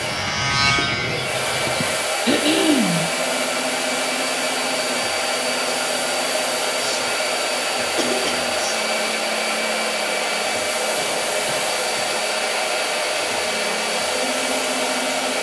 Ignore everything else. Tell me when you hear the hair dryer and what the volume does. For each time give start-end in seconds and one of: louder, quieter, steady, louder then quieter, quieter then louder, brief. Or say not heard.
0.0-15.3 steady.